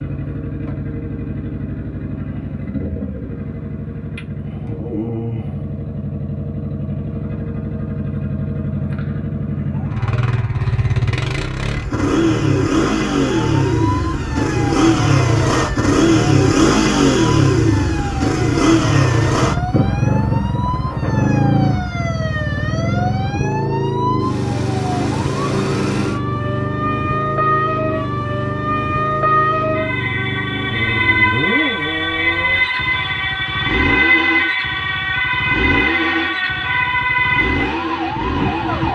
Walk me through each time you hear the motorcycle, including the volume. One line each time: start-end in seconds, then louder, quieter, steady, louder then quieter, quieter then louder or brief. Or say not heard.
0.0-38.9 louder then quieter.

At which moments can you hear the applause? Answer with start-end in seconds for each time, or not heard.
not heard.